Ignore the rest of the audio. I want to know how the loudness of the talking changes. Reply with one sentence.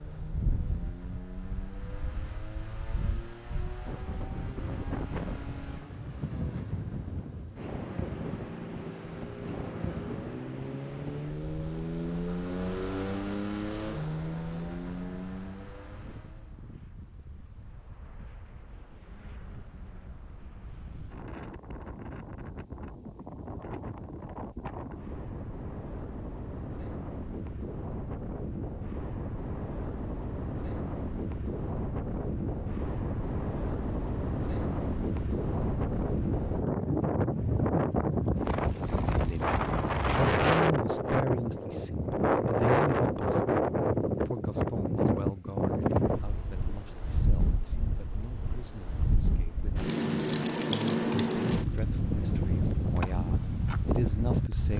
The loudness of the talking goes down, then up.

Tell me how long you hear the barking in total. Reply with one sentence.
You can't hear the barking here.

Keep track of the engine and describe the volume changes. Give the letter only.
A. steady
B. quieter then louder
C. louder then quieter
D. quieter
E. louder
E.